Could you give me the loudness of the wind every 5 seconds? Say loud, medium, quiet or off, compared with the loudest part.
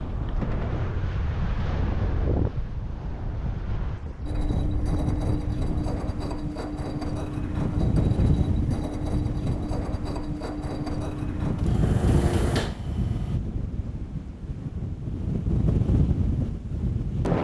medium, loud, loud, loud.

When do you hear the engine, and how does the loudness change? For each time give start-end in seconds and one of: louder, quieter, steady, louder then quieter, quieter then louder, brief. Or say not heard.
4.2-13.4 steady.